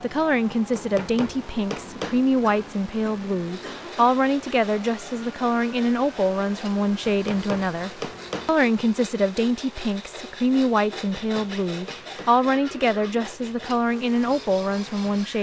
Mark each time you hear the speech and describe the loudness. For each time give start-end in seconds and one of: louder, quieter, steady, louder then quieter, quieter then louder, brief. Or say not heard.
0.0-15.3 steady.